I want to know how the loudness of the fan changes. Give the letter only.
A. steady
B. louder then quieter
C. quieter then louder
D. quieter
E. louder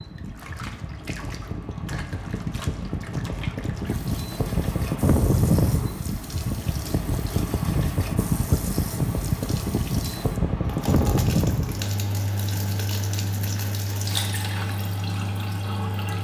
B.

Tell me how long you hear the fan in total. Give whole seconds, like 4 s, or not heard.
16 s.